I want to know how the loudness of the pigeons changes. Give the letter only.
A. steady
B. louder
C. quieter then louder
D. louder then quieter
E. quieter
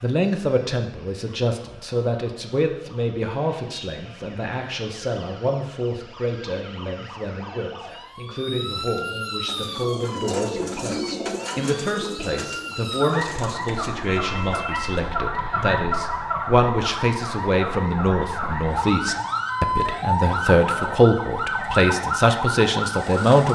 E.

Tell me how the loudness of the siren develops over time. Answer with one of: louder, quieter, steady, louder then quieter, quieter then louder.
louder.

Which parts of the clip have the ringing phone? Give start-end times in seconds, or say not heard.
14.1-15.7.